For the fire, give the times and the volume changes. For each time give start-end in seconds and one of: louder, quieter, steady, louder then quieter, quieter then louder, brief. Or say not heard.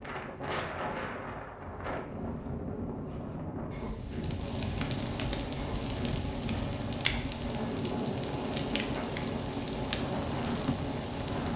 4.0-11.5 steady.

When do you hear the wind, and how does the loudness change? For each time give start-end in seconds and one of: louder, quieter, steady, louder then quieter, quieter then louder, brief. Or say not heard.
0.0-11.5 steady.